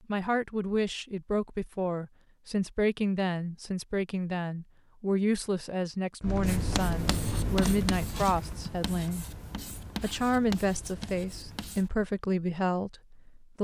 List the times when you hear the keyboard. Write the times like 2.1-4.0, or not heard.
6.2-11.8.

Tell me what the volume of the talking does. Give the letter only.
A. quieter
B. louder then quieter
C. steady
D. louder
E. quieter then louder
C.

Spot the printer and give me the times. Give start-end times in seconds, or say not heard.
not heard.